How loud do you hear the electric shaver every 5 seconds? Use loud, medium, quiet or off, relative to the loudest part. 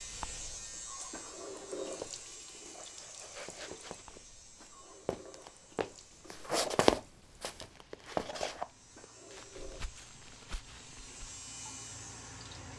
loud, medium, loud.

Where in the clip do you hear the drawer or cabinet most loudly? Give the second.
2 s.